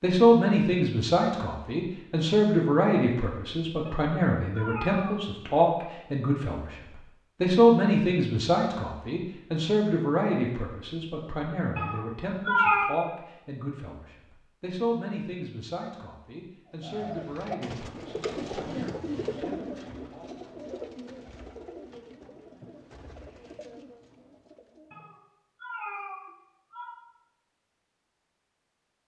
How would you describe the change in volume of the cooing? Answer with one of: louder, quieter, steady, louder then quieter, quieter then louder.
quieter.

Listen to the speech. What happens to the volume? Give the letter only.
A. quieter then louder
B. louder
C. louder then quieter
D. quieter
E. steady
D.